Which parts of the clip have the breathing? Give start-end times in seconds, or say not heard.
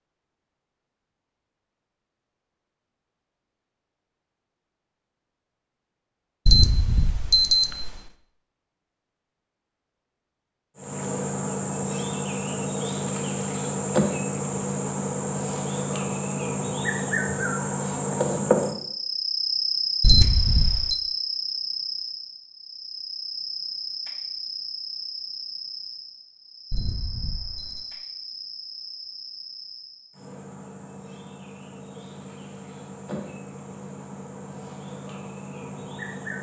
not heard.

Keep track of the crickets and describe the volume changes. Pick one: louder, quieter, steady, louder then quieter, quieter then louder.
quieter.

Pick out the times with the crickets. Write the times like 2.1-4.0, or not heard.
10.8-36.3.